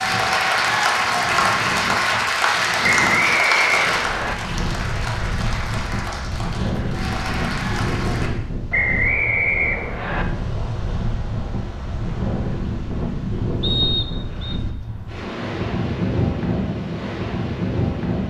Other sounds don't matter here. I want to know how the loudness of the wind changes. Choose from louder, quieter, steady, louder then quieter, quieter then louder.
louder.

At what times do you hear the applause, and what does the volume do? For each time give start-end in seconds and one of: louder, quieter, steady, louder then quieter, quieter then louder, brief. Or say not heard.
0.0-8.3 quieter.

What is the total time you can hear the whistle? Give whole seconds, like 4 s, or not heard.
4 s.